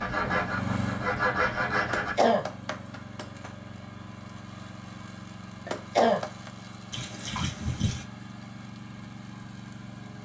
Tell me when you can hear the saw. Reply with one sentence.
You can hear the saw from 0.0 to 2.1 s.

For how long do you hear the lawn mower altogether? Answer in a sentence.
The lawn mower can be heard for 10 seconds in total.